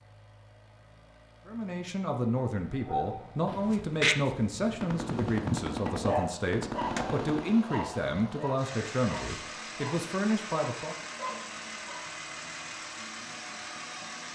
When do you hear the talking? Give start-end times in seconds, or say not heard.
1.4-10.9.